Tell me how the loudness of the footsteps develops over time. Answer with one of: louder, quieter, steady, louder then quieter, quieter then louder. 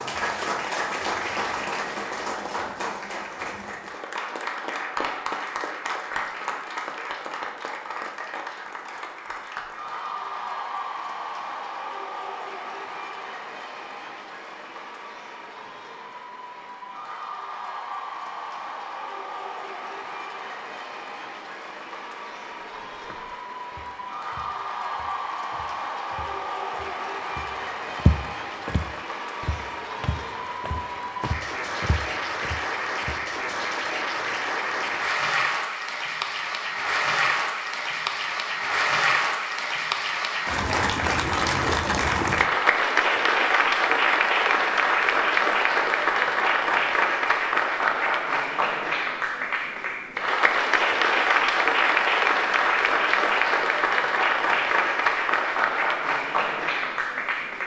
louder then quieter.